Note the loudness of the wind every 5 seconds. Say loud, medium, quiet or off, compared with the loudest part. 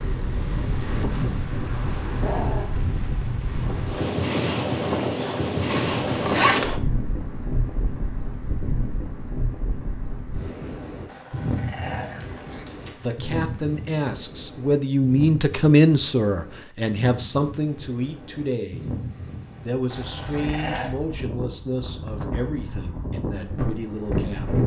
loud, loud, medium, medium, loud.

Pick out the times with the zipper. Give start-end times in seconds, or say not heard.
5.7-6.8.